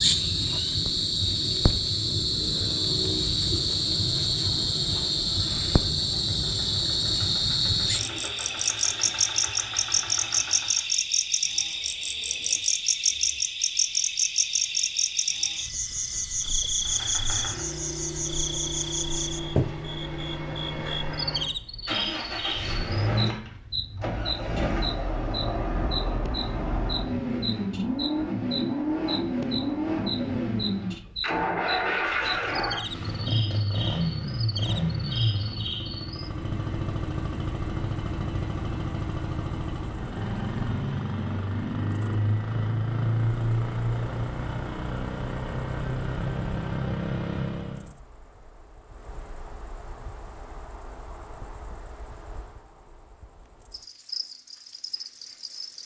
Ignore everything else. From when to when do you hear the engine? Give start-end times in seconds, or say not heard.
5.3-10.9, 16.8-47.9.